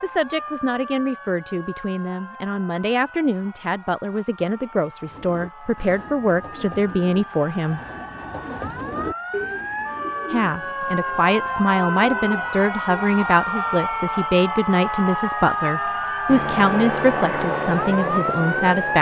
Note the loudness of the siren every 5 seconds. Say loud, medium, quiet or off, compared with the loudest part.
quiet, medium, loud, loud.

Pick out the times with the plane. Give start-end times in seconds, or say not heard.
16.2-18.9.